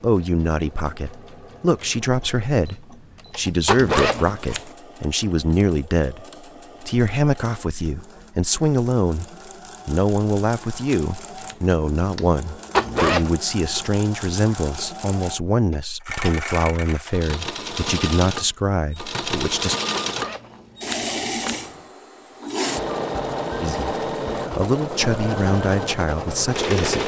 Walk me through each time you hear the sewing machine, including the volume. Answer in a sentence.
The sewing machine can be heard from 0.0 to 27.0 s, getting louder.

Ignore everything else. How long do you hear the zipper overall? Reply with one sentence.
The zipper can be heard for 3 seconds in total.